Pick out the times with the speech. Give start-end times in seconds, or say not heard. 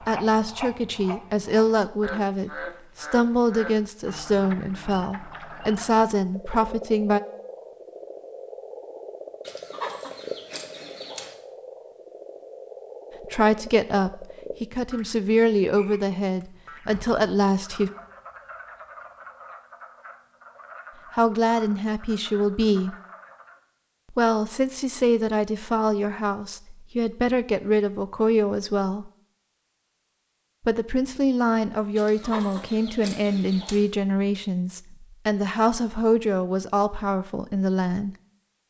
0.1-7.2, 13.3-17.9, 21.1-22.9, 24.1-29.1, 30.6-38.1.